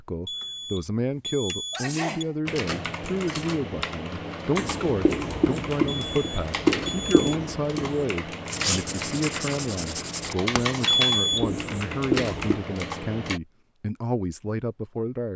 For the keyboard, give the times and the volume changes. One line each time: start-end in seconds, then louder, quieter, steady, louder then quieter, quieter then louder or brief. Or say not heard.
2.5-13.4 steady.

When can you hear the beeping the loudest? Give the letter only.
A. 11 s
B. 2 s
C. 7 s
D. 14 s
A.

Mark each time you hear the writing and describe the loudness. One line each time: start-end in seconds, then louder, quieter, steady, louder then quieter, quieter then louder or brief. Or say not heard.
4.5-12.6 quieter then louder.